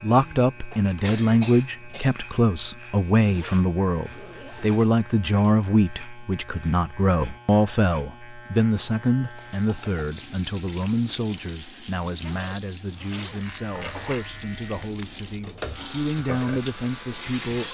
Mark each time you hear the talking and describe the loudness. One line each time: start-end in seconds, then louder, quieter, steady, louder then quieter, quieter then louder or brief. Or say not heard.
0.0-17.6 quieter.